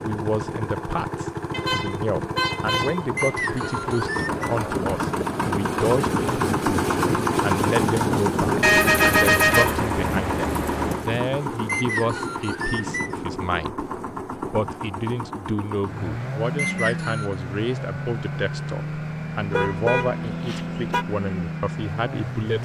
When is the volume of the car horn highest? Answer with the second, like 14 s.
9 s.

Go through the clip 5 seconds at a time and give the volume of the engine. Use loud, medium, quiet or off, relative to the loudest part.
medium, loud, medium, medium, medium.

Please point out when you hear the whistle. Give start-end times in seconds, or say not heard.
3.1-4.5, 11.7-13.2, 16.6-17.4.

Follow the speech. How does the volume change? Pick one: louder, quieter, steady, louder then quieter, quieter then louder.
steady.